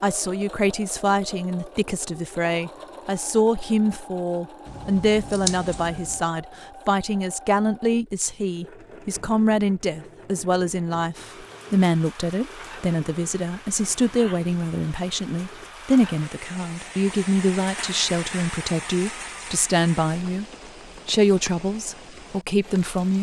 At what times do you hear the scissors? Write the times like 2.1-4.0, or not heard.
4.7-6.2.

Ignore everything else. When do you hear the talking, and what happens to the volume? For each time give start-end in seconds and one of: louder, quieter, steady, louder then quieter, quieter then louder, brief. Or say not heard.
0.0-20.4 steady
21.1-23.1 brief.